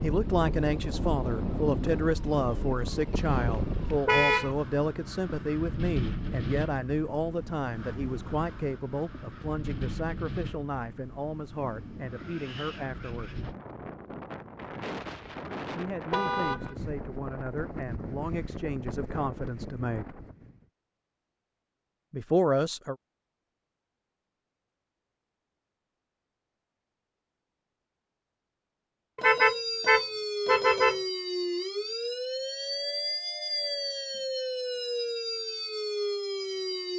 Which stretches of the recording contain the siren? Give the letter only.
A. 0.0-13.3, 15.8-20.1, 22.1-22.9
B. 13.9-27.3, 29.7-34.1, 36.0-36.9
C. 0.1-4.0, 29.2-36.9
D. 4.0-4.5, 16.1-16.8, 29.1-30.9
C.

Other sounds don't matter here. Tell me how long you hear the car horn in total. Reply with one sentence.
The car horn can be heard for 3 seconds in total.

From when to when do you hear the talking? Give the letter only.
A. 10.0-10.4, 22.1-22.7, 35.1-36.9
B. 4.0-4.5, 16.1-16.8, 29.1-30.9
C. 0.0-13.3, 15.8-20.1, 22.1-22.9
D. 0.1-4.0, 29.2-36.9
C.